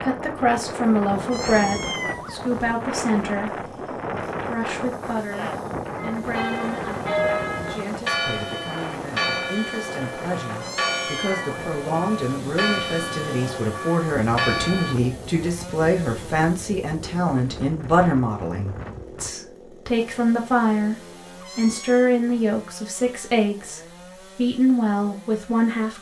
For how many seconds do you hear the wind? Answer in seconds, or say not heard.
19 s.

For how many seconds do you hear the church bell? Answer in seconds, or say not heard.
9 s.